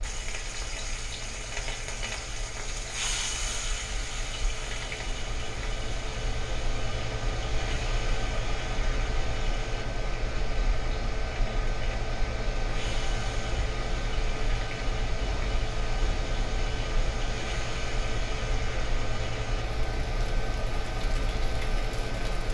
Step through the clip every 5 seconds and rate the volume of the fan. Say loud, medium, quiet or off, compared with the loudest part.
medium, loud, loud, loud, loud.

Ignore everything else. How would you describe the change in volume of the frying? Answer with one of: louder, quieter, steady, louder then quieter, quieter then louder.
quieter.